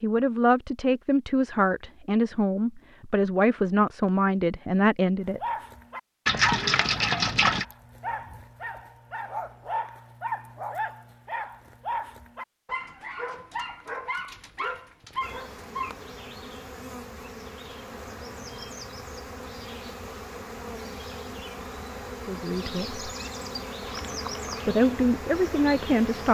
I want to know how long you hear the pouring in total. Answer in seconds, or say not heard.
2 s.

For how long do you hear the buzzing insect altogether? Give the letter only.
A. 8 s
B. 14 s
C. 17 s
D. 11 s
D.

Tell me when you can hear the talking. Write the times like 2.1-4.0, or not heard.
0.0-5.4, 22.2-23.1, 24.6-26.2.